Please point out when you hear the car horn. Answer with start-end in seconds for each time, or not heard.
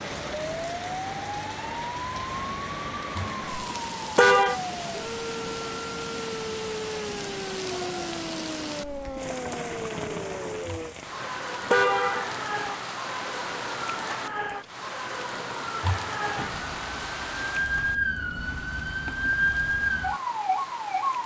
3.1-4.6, 10.7-12.4, 15.8-16.8.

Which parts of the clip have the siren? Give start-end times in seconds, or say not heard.
0.0-21.2.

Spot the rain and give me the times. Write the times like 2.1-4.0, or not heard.
0.0-21.2.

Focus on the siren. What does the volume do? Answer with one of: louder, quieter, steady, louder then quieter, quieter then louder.
louder.